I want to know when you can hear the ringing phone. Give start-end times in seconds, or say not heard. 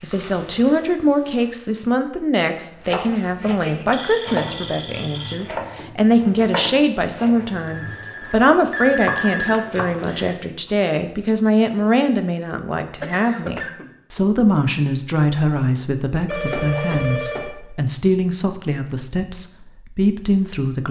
3.9-5.4, 7.7-10.3, 16.2-17.6.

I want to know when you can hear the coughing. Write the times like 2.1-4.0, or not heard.
13.0-13.9.